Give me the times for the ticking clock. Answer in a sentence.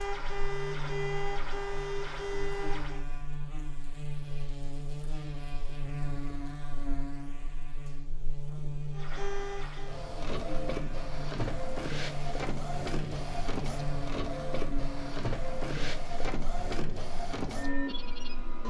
The ticking clock can't be heard in this clip.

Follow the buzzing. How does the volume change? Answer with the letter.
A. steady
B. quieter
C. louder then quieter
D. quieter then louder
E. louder
A.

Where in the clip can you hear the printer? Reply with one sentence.
The printer can be heard from 0.0 to 3.0 s and from 8.9 to 18.6 s.